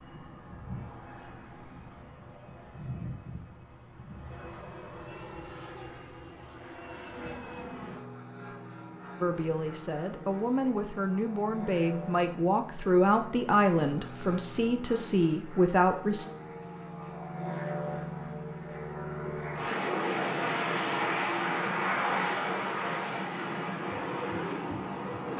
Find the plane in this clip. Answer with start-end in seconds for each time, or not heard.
0.0-25.3.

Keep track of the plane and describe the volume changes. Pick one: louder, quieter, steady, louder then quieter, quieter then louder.
louder.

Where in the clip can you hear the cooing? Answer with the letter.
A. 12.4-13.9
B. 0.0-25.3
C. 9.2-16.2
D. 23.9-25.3
D.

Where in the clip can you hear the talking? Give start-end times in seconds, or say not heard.
9.2-16.2.